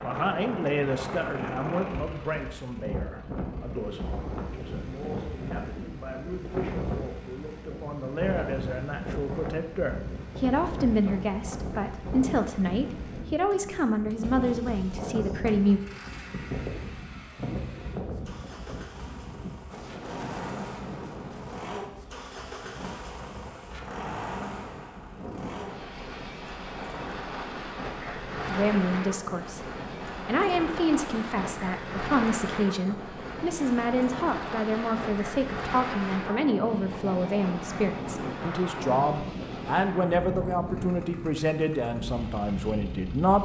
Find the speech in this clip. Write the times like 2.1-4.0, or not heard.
0.0-15.8, 28.4-29.6, 30.2-43.3.